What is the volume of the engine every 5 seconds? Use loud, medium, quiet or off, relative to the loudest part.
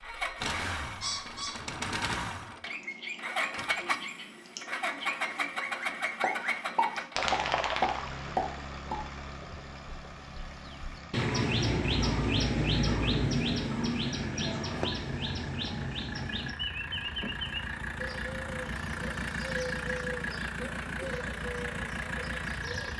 loud, loud, medium, loud, loud.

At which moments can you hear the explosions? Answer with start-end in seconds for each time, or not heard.
6.2-9.0.